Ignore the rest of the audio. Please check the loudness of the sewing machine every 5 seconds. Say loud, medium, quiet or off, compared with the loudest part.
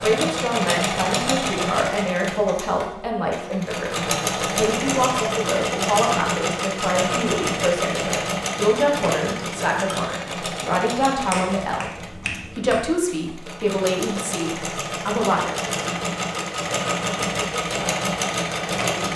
loud, loud, medium, loud.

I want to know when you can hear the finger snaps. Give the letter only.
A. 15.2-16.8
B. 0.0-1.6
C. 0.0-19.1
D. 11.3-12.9
D.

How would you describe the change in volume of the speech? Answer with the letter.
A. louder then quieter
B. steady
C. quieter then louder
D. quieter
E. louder
B.